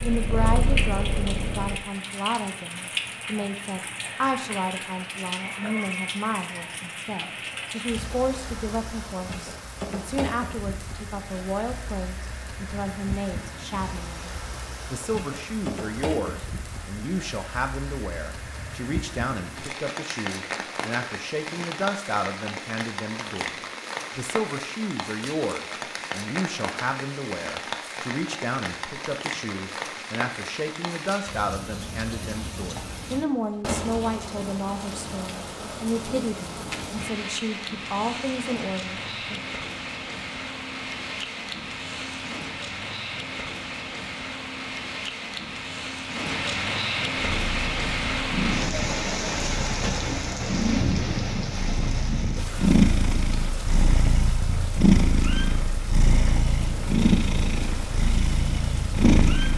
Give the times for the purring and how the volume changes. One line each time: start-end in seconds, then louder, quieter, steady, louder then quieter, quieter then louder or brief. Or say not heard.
0.0-1.8 brief
47.1-59.5 louder.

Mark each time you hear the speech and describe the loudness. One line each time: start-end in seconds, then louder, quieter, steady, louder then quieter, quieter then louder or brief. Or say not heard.
0.0-39.4 steady.